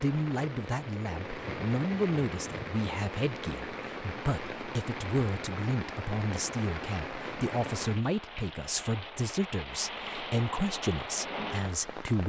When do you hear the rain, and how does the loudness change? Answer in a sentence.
The rain can be heard from 0.0 to 12.2 s, at a steady volume.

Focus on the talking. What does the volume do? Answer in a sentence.
The loudness of the talking stays about the same.